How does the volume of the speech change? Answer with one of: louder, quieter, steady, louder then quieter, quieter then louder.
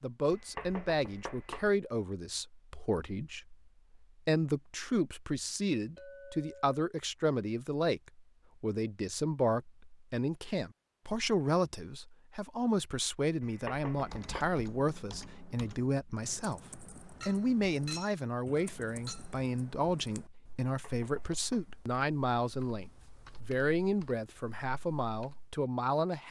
steady.